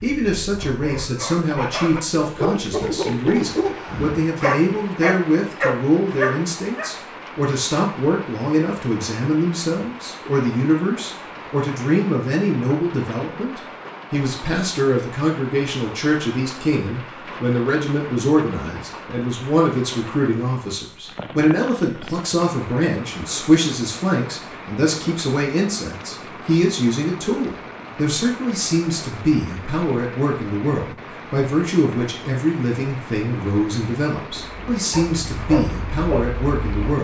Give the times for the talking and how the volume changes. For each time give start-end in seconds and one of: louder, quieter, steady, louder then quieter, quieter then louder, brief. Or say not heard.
0.0-36.9 steady.